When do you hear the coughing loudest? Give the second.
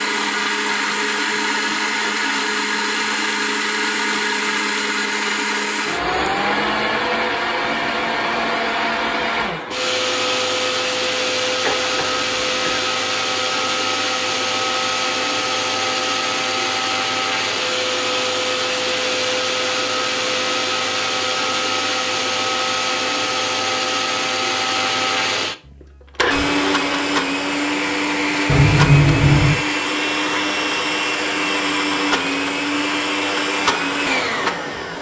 29 s.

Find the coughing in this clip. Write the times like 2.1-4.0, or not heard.
11.7-12.8, 28.4-29.6.